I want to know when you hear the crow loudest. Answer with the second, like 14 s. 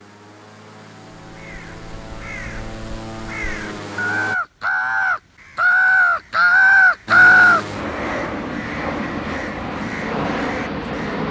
7 s.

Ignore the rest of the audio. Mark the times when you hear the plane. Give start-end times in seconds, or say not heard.
0.0-4.3, 7.0-11.2.